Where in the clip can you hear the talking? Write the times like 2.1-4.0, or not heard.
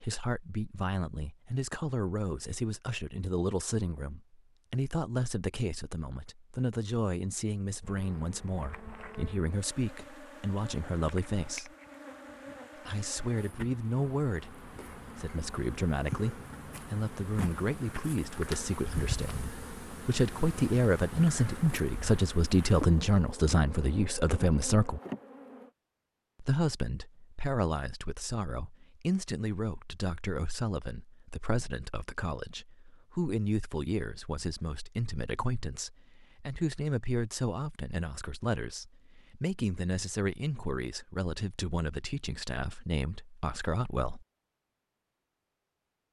0.0-11.7, 12.8-25.0, 26.4-44.2.